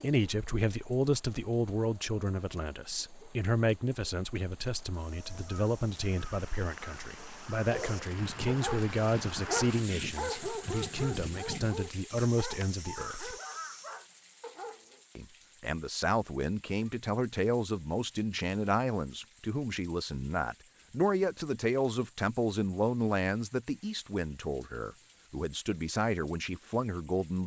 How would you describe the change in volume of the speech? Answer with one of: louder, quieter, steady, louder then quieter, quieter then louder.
steady.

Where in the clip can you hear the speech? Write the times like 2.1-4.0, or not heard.
0.0-13.3, 15.2-27.4.